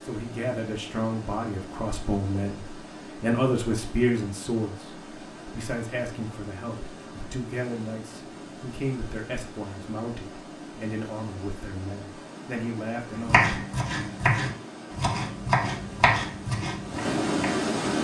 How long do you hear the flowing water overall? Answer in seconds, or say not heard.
18 s.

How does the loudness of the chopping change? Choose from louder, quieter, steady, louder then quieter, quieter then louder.
louder then quieter.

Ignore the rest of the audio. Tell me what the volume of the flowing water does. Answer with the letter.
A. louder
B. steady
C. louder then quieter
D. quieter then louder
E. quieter
A.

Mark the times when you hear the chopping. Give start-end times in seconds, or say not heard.
13.1-17.7.